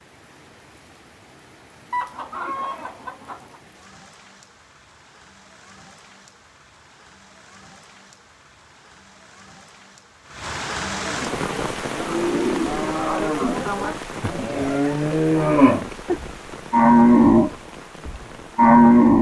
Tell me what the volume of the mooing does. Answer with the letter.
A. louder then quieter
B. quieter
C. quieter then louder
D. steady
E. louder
E.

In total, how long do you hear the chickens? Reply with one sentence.
You can hear the chickens for 2 seconds altogether.